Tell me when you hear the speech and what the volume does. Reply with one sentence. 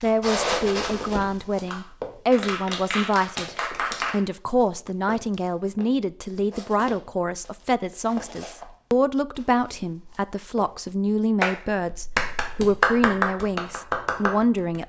You can hear the speech from 0.0 to 14.8 s, at a steady volume.